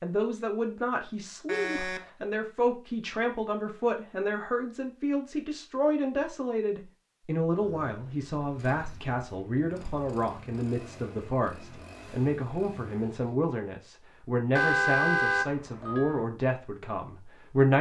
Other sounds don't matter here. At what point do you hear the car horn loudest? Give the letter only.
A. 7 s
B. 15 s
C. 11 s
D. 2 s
B.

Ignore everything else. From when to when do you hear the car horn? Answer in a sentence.
You can hear the car horn from 1.4 to 2.0 s and from 14.6 to 16.2 s.